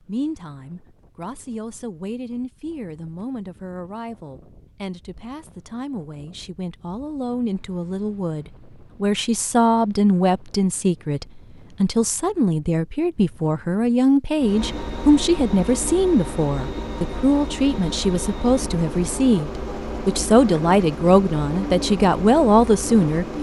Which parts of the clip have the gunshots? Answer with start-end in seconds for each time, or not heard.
not heard.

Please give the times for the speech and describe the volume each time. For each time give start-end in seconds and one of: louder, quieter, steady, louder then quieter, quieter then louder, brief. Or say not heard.
0.0-23.3 louder.